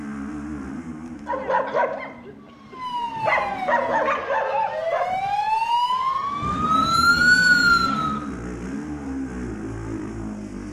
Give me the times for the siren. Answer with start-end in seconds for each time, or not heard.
2.4-8.2.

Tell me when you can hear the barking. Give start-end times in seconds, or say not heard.
1.2-8.2.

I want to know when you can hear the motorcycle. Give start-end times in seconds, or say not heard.
0.0-4.2, 6.2-10.6.